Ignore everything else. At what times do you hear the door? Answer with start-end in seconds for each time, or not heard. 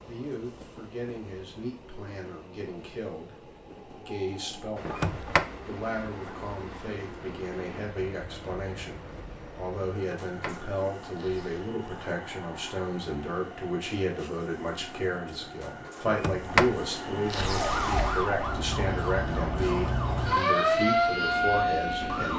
4.8-5.5, 9.9-11.7, 16.1-18.4.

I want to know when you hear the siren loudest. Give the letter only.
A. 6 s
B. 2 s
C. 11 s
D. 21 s
D.